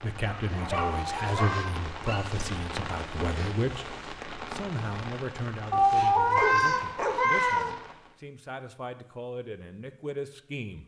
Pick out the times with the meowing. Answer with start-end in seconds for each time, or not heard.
0.9-1.8, 5.7-7.7.